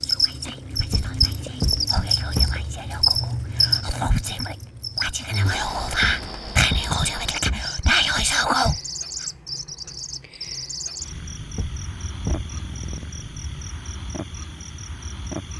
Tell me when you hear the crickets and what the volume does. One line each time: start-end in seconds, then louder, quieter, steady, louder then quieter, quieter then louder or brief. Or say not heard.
0.0-15.5 quieter.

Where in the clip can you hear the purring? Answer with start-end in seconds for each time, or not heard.
11.1-13.8.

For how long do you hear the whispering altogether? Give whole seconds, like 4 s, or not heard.
9 s.